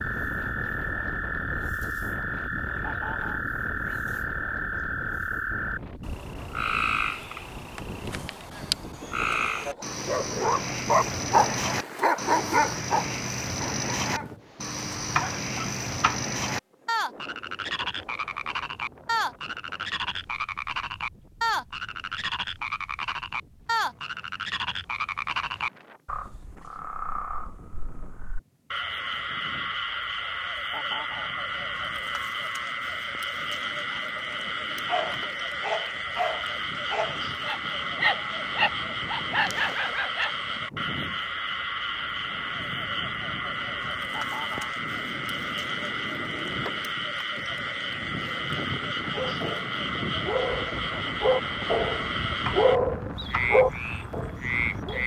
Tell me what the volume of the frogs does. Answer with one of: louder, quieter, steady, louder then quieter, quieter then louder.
steady.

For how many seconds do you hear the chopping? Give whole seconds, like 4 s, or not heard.
2 s.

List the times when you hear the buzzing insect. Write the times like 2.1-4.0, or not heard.
not heard.